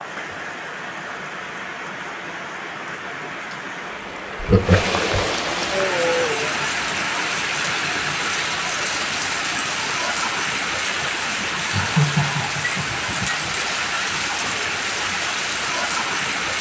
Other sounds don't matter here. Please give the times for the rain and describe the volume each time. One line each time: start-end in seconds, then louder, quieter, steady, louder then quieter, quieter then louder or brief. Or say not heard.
0.0-16.5 louder.